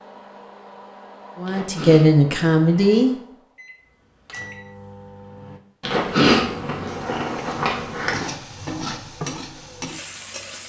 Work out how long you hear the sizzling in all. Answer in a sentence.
The sizzling can be heard for 4 seconds in total.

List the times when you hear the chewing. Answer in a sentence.
The chewing can be heard from 1.4 to 3.1 s and from 5.8 to 8.3 s.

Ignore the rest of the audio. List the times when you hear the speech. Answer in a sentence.
The speech can be heard from 1.4 to 3.1 s.